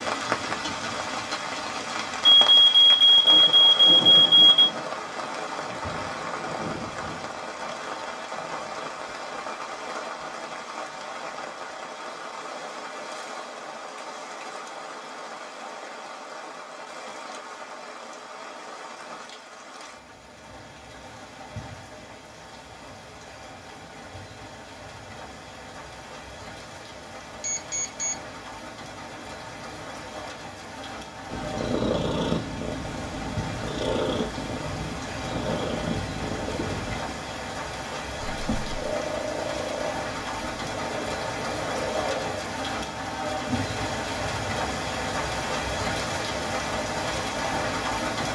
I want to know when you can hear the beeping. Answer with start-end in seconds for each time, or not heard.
2.3-4.7, 27.4-28.2.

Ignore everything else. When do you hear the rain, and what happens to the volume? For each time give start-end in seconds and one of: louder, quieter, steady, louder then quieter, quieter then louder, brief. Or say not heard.
0.0-48.2 quieter then louder.